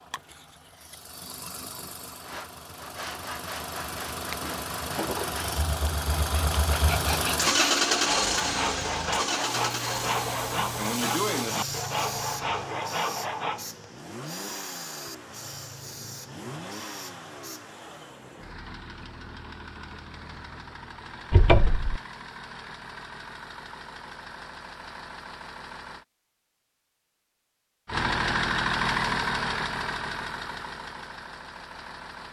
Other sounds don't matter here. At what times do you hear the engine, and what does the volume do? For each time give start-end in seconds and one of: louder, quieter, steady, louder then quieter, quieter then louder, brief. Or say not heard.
0.0-26.1 louder then quieter
27.9-32.2 quieter.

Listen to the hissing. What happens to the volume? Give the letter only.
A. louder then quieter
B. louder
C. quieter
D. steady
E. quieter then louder
C.